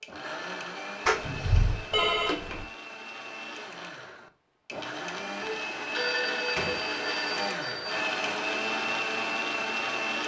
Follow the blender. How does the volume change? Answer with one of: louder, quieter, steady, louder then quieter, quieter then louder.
louder.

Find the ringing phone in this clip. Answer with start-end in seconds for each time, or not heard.
1.9-2.6, 5.4-8.1.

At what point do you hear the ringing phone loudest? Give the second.
2 s.